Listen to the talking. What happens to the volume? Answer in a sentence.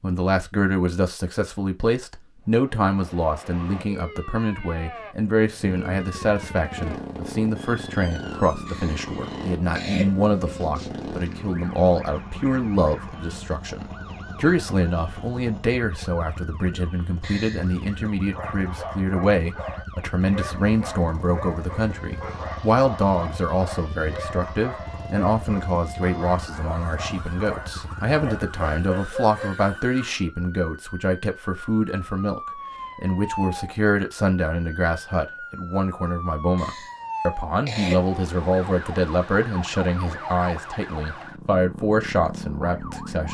The loudness of the talking stays about the same.